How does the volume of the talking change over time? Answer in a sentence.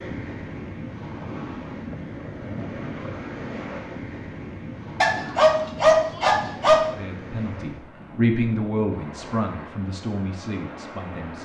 The volume of the talking goes up, then down.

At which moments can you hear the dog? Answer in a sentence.
The dog can be heard from 5.0 to 6.8 s.